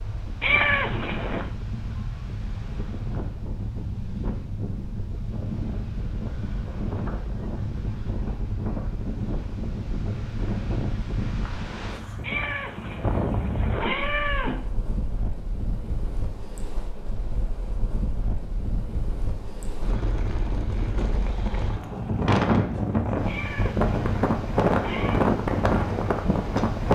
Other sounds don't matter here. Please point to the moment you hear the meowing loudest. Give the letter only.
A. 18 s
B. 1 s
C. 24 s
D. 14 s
B.